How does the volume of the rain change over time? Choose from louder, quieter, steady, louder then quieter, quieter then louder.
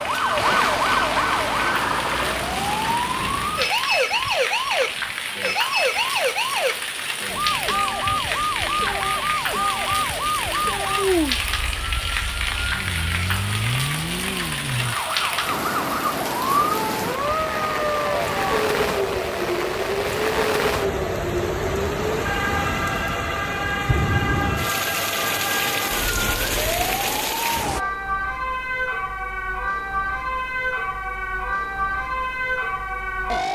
steady.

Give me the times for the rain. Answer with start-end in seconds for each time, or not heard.
0.0-27.8.